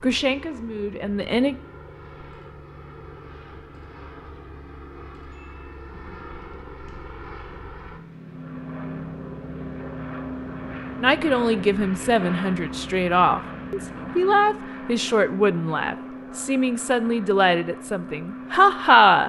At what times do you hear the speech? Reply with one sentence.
The speech can be heard from 0.0 to 1.6 s and from 11.0 to 19.2 s.